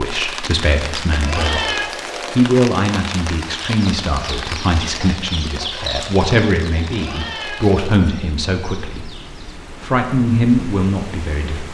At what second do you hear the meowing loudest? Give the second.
2 s.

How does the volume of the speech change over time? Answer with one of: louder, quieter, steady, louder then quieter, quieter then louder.
steady.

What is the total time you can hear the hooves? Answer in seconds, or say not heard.
not heard.